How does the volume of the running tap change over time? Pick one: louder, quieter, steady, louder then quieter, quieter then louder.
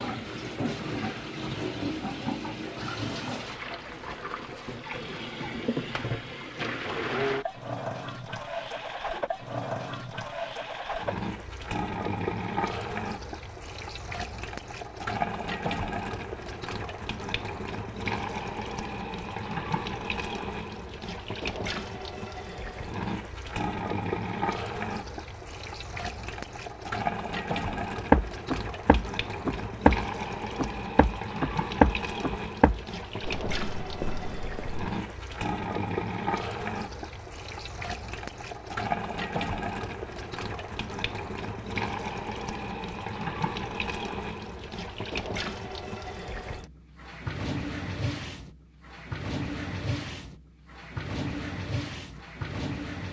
steady.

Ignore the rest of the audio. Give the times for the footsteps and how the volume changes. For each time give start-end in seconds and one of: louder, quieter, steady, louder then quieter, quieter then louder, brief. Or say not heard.
27.7-34.8 quieter.